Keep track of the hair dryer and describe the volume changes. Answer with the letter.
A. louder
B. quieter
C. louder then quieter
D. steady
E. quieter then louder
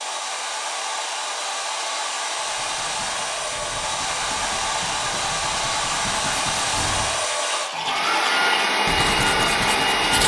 A.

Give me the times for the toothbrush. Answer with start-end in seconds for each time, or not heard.
2.4-10.2.